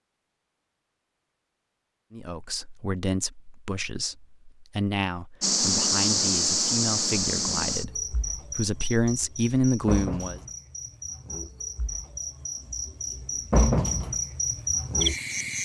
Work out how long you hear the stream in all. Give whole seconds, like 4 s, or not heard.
not heard.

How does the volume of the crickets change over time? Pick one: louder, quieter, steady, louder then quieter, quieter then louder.
quieter then louder.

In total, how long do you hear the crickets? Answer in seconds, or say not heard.
10 s.